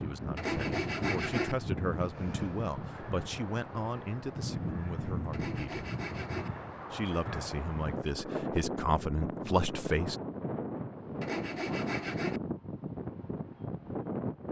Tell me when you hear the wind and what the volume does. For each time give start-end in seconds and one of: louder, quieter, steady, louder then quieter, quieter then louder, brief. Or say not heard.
0.0-14.4 steady.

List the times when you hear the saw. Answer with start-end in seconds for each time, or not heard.
0.3-1.6, 5.3-6.5, 11.2-12.4.